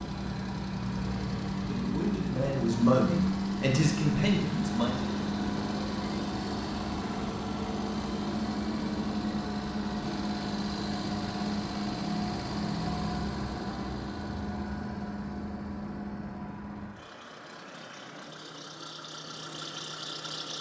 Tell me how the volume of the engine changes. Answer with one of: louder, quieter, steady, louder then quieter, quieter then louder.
quieter.